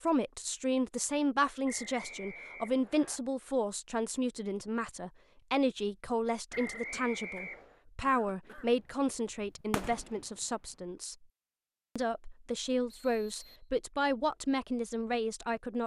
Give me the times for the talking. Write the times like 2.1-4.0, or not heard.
0.0-11.2, 11.9-15.8.